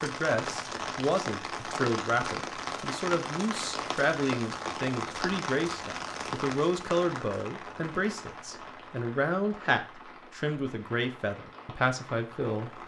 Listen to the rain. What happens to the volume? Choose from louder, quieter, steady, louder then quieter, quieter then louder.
quieter.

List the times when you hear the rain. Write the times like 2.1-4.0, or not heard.
0.0-12.8.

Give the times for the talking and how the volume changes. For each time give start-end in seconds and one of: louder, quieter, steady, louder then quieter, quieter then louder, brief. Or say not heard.
0.0-12.8 steady.